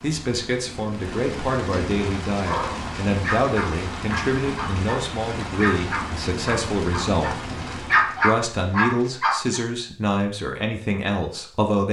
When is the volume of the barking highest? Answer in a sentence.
The volume of the barking peaks at 8 seconds.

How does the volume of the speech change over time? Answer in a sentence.
The volume of the speech stays about the same.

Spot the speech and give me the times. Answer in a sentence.
You can hear the speech from 0.0 to 7.3 s and from 8.2 to 11.8 s.